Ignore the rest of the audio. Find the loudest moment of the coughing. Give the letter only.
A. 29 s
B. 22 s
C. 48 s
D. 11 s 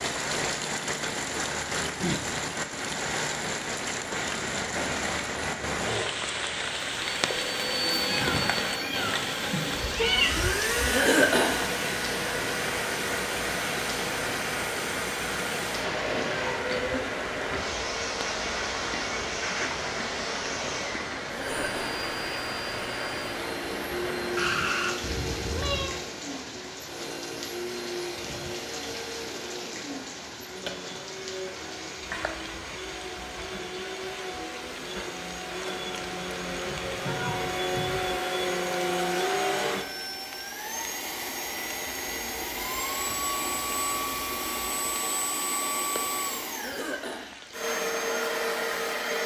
D.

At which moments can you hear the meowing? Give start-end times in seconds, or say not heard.
8.0-10.4, 24.4-26.0, 36.9-38.0.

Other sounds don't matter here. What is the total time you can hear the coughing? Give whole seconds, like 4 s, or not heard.
2 s.